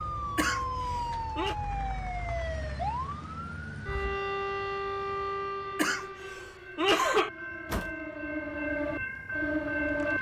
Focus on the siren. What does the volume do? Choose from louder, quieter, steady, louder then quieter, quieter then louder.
quieter then louder.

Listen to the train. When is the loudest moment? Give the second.
10 s.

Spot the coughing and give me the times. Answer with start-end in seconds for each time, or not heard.
0.3-1.6, 5.8-7.3.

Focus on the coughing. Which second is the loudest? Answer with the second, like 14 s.
7 s.